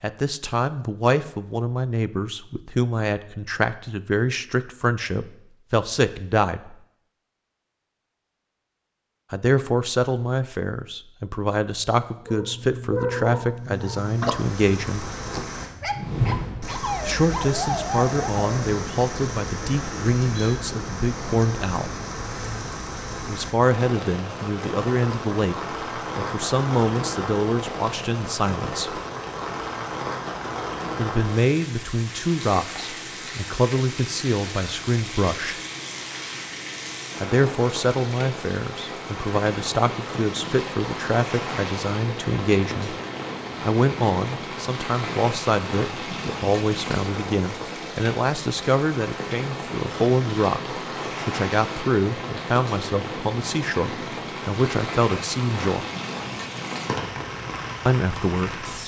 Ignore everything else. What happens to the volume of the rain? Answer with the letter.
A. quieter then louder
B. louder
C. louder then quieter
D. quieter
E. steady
E.